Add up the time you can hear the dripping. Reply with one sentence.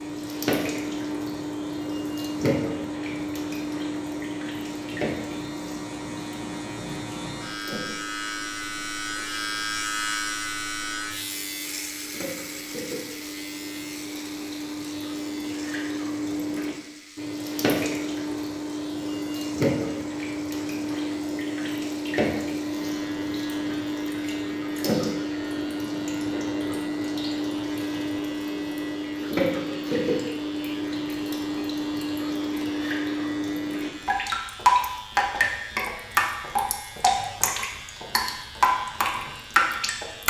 The dripping can be heard for 40 seconds in total.